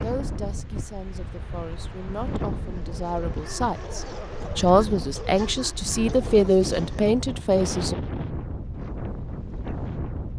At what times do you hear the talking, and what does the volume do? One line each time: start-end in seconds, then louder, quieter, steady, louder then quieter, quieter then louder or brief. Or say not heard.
0.0-8.0 louder.